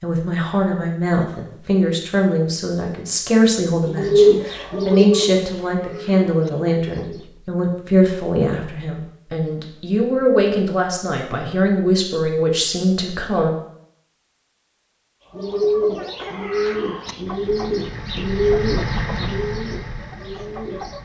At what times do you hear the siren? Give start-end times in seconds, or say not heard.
not heard.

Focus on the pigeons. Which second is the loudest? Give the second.
4 s.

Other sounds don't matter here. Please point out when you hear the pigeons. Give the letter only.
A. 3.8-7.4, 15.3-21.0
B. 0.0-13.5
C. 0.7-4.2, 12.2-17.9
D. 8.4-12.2
A.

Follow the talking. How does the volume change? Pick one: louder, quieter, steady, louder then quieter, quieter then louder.
steady.